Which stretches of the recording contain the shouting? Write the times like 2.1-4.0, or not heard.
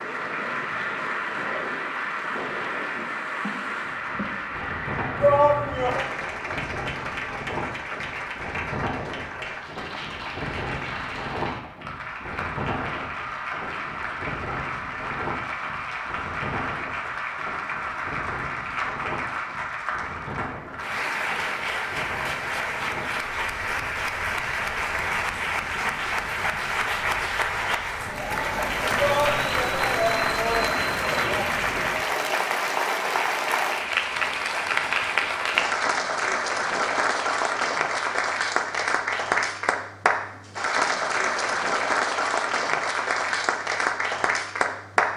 5.2-6.0, 28.9-31.6.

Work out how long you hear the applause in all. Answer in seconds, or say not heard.
45 s.